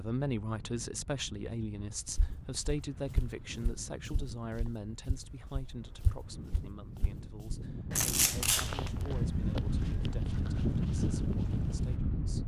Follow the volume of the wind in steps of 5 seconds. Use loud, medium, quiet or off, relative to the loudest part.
quiet, medium, loud.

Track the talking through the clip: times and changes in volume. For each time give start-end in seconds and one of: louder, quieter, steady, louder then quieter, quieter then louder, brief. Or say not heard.
0.0-12.4 quieter.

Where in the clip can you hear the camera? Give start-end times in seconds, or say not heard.
8.0-8.9.